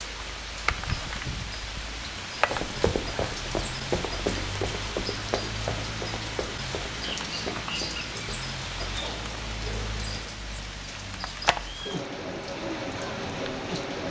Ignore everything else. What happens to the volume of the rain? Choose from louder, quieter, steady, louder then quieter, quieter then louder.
steady.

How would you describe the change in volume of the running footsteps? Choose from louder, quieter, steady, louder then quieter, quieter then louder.
quieter.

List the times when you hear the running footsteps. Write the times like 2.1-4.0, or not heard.
2.5-8.5.